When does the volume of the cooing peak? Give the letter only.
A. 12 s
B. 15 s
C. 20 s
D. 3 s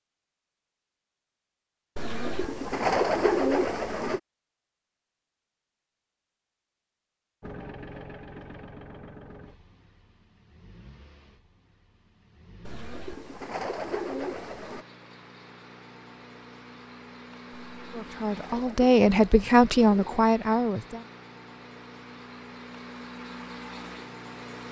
D.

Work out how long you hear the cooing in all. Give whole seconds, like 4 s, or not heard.
7 s.